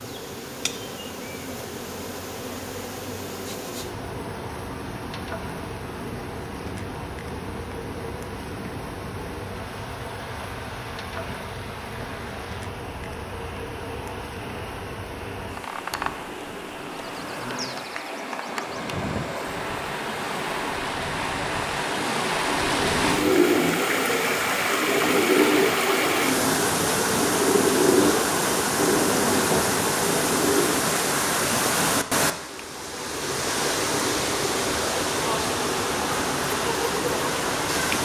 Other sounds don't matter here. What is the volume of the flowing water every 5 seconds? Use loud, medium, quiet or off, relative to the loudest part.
quiet, quiet, quiet, medium, loud, loud, loud, loud.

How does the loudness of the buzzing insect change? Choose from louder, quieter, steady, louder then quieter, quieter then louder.
steady.